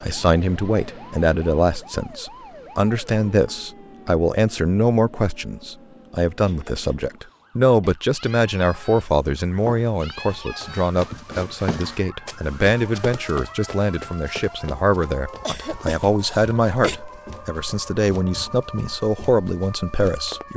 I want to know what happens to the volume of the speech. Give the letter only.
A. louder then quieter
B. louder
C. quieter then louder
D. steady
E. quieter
D.